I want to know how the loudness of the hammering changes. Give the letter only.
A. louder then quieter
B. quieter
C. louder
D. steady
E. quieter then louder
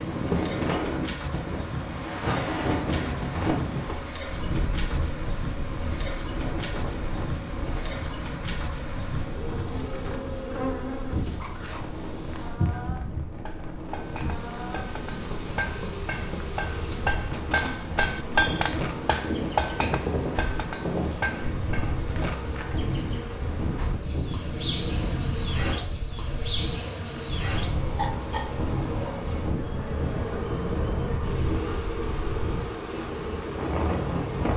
A.